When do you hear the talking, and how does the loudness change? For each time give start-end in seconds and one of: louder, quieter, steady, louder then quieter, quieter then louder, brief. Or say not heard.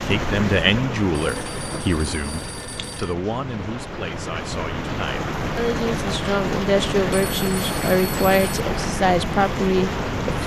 0.1-10.4 quieter then louder.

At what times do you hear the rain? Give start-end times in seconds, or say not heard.
0.0-10.4.